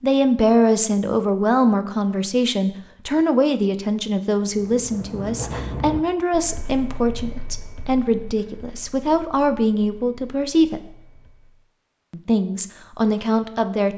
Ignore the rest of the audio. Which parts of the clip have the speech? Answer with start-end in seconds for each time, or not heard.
0.0-10.8, 12.1-13.9.